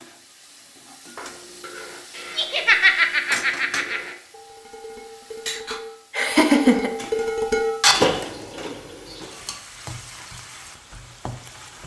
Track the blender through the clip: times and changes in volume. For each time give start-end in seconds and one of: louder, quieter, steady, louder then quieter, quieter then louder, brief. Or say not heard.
not heard.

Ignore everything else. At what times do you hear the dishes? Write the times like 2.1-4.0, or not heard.
1.1-9.7.